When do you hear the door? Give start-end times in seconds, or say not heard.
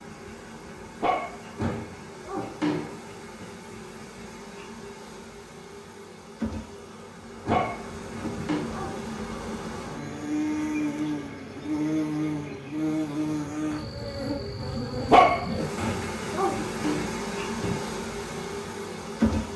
1.6-3.5, 7.5-8.7, 15.8-17.8.